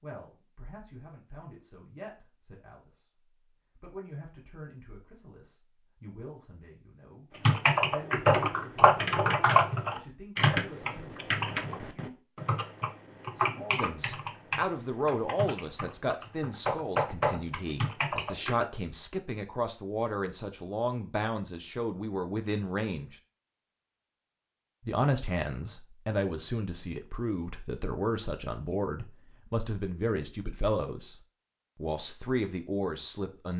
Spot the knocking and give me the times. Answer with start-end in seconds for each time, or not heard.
not heard.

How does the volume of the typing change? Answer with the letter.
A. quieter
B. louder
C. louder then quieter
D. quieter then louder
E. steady
D.